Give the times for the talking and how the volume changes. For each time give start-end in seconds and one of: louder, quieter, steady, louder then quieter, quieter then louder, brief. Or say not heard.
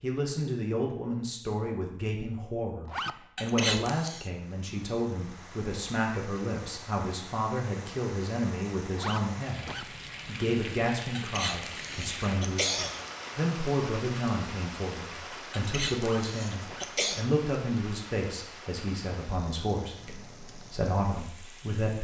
0.0-21.9 steady.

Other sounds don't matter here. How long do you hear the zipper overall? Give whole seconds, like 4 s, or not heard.
3 s.